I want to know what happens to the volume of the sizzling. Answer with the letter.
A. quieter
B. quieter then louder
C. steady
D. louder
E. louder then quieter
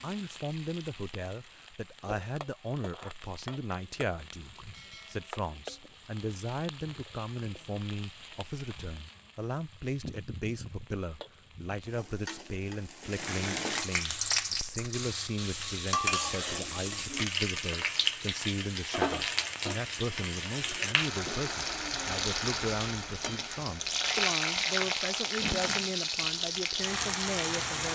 D.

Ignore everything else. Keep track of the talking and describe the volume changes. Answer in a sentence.
The loudness of the talking stays about the same.